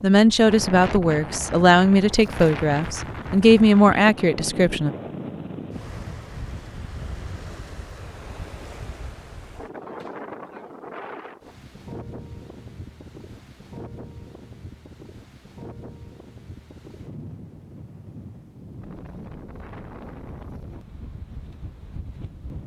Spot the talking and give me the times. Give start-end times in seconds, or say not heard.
0.0-4.9.